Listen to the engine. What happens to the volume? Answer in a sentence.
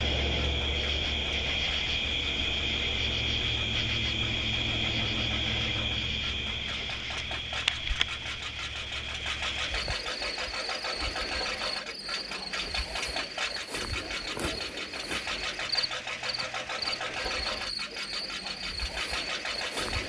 The loudness of the engine goes up.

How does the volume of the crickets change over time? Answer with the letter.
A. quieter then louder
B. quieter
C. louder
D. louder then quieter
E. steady
B.